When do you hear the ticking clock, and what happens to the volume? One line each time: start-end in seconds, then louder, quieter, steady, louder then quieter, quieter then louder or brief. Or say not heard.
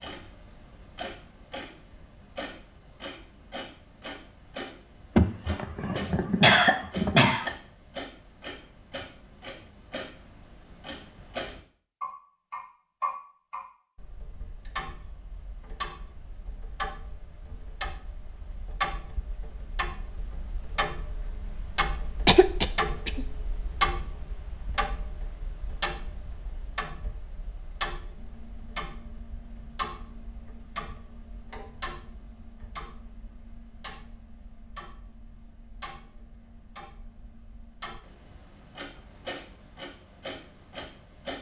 0.0-41.3 louder then quieter.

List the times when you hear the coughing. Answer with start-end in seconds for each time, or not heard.
5.2-7.5, 22.2-23.2.